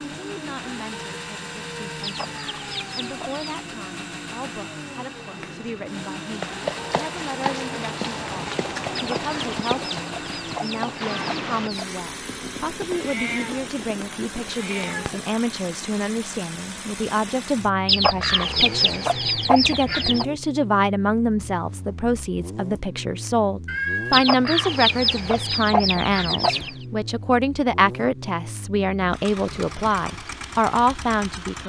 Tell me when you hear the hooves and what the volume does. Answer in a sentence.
The hooves can be heard from 6.3 to 14.6 s, getting quieter.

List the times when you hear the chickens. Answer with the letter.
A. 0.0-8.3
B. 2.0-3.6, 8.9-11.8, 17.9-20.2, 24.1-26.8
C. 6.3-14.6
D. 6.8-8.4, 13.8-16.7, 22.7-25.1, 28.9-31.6
B.